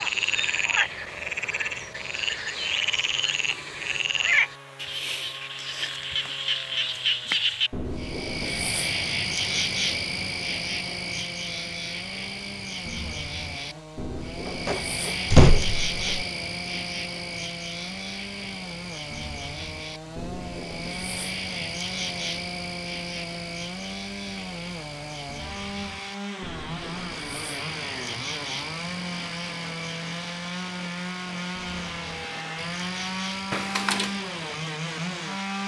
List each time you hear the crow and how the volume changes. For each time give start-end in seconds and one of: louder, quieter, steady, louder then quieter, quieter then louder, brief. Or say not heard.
not heard.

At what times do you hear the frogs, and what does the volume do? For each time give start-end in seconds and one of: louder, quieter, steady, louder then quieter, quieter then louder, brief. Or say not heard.
0.0-35.6 quieter.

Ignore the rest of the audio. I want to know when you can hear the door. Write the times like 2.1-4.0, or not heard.
14.4-16.2, 33.5-34.1.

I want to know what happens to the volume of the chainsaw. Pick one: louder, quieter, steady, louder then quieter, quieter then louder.
louder.